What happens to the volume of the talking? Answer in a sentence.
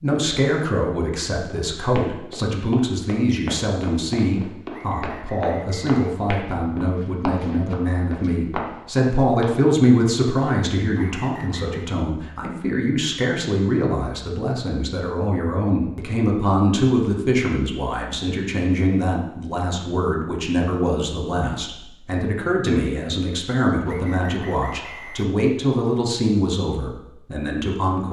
The volume of the talking stays about the same.